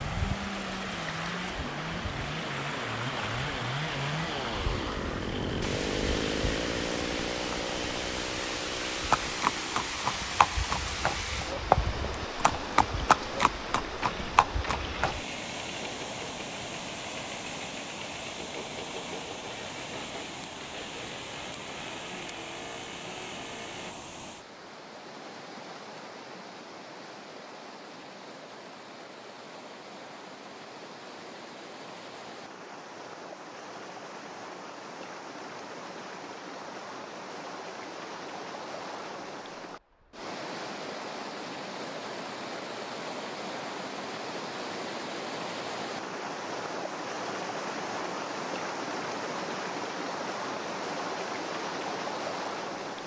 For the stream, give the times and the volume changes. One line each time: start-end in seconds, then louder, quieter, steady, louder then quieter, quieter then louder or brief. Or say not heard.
0.0-53.0 quieter then louder.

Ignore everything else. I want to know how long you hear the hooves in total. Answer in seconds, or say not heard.
6 s.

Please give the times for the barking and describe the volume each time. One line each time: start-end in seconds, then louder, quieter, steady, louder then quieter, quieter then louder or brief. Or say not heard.
not heard.